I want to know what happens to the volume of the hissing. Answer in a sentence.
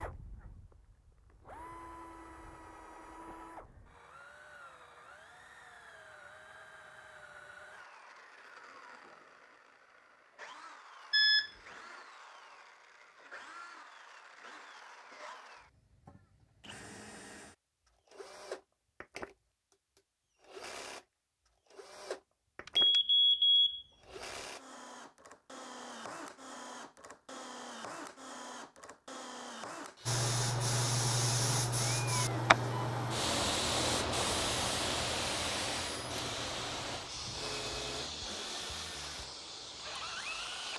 The volume of the hissing goes down.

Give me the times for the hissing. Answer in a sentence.
The hissing can be heard from 30.1 to 40.7 s.